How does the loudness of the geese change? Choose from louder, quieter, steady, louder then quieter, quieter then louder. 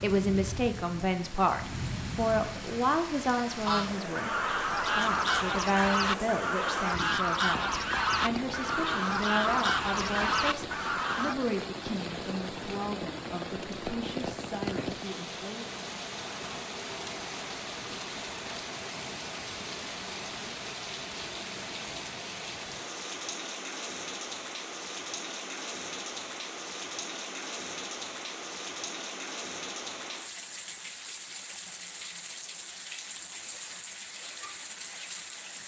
steady.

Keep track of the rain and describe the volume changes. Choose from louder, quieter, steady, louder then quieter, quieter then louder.
steady.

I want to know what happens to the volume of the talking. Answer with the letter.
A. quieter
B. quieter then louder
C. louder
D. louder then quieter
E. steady
A.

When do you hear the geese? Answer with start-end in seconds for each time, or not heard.
3.6-11.3.